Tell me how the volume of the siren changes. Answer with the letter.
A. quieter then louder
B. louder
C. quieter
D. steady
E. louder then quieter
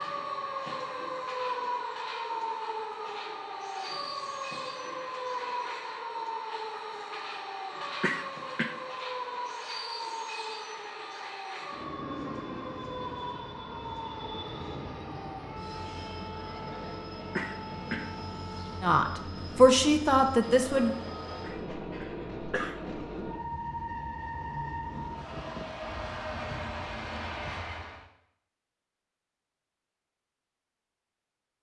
C.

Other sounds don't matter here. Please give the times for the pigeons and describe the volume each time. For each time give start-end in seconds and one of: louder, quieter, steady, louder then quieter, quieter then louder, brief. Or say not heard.
not heard.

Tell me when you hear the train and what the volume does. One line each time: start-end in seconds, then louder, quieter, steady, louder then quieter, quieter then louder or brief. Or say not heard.
0.0-28.1 louder.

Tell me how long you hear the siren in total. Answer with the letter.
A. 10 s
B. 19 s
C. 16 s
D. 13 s
B.